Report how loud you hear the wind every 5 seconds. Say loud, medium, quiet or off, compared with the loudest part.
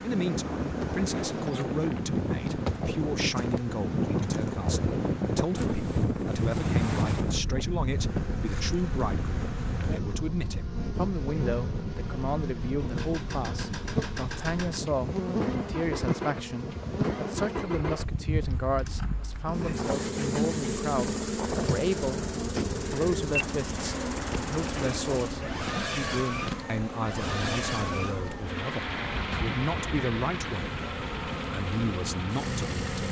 loud, loud, medium, medium, medium, medium, medium.